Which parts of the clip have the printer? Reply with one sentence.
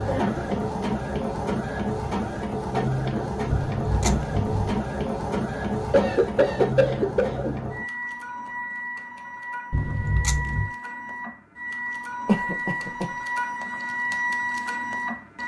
The printer can be heard from 0.0 to 15.4 s.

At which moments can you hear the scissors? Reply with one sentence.
The scissors can be heard from 3.5 to 4.8 s and from 9.7 to 10.7 s.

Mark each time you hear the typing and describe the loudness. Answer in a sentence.
You can't hear the typing here.